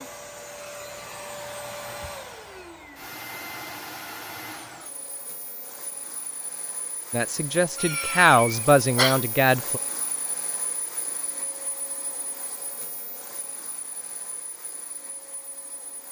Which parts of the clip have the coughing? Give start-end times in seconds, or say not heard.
7.8-9.2.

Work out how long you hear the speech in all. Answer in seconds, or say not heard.
3 s.